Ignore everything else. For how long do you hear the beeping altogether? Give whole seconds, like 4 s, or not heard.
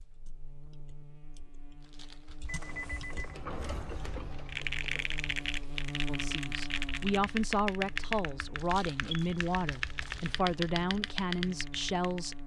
2 s.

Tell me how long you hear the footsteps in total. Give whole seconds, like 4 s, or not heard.
not heard.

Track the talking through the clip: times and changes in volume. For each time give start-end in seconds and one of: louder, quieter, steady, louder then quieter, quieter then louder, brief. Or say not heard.
6.0-12.4 steady.